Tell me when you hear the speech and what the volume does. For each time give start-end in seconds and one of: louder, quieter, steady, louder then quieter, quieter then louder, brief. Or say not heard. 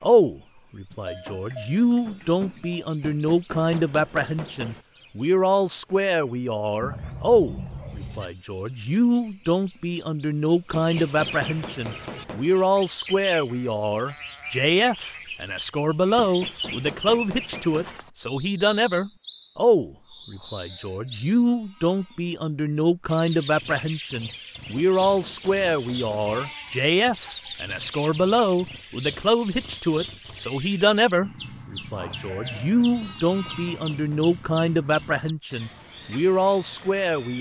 0.0-37.3 steady.